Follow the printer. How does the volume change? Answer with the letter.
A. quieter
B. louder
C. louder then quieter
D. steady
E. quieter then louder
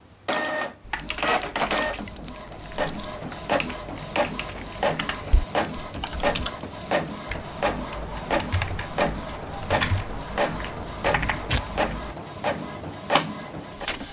D.